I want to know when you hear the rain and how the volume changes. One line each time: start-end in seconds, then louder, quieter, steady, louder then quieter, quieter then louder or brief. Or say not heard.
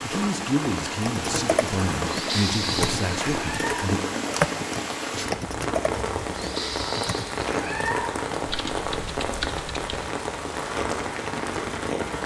0.0-12.2 steady.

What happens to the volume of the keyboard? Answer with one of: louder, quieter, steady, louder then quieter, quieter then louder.
quieter.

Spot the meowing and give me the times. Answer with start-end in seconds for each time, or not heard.
3.4-3.9, 7.5-8.2.